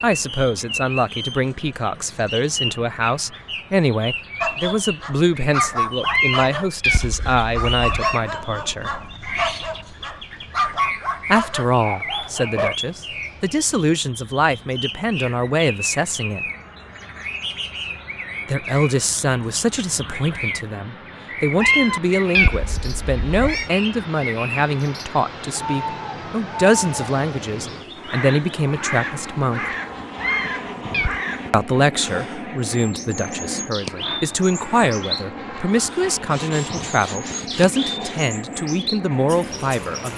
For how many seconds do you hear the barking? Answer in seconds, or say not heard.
8 s.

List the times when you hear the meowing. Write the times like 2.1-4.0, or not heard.
6.0-8.2, 21.6-23.7, 30.1-31.2.